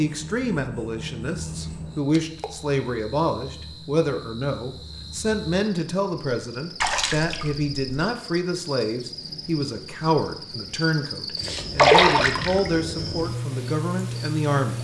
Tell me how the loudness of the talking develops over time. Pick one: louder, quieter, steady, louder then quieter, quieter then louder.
steady.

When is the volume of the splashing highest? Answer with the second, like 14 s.
12 s.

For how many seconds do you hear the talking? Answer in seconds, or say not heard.
15 s.